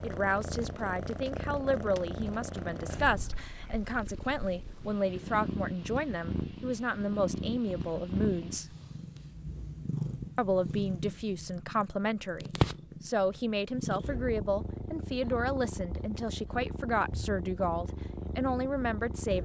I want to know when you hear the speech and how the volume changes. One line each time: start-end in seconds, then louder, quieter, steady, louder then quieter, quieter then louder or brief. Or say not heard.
0.0-8.8 steady
10.3-19.3 steady.